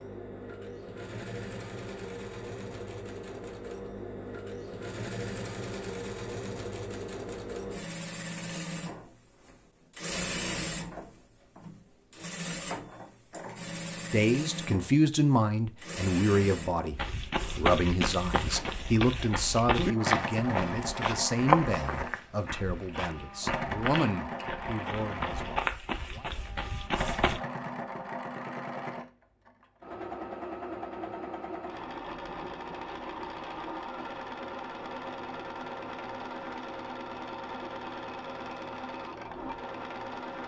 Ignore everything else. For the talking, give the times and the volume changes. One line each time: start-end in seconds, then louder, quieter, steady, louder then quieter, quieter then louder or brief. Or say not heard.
14.1-26.2 quieter.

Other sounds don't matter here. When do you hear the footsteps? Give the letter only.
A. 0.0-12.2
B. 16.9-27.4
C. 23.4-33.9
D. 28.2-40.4
B.